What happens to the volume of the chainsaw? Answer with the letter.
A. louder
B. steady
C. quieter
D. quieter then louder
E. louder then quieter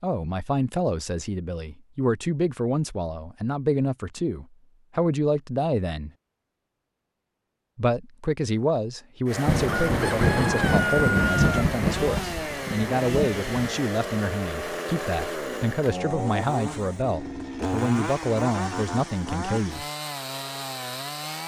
B.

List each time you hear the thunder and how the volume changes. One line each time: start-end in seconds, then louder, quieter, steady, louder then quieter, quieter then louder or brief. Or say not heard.
9.4-13.4 quieter.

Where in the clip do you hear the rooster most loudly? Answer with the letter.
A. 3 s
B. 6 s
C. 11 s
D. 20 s
C.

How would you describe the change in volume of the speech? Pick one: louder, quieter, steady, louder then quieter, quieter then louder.
steady.